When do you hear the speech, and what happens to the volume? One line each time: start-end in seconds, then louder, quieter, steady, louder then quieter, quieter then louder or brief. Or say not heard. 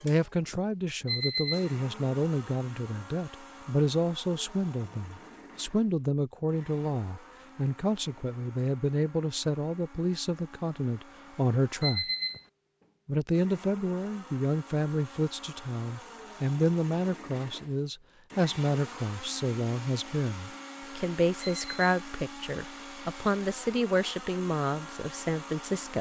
0.0-12.1 steady
13.1-25.9 steady.